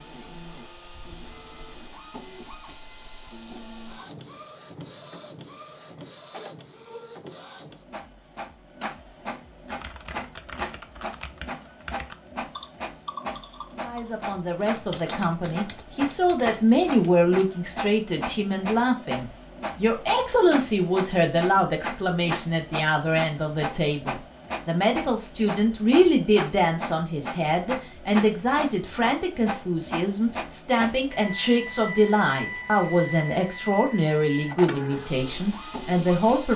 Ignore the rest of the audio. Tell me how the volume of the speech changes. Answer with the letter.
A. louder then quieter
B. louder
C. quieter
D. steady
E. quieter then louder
D.